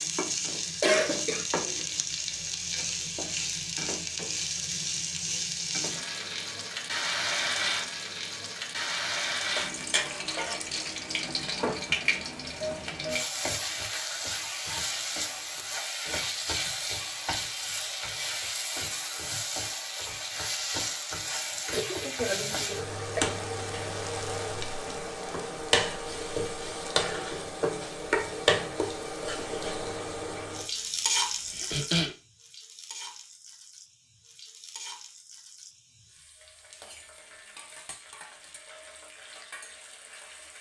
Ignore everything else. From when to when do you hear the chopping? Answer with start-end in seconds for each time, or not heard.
not heard.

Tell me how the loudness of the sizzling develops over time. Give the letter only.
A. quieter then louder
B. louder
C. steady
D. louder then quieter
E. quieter
E.